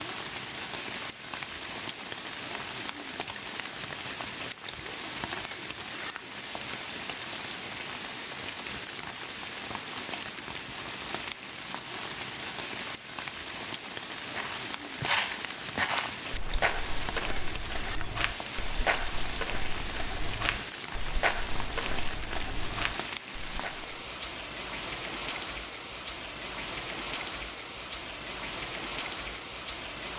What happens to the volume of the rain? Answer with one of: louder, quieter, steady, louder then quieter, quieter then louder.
steady.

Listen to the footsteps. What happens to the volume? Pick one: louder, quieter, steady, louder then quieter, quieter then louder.
quieter.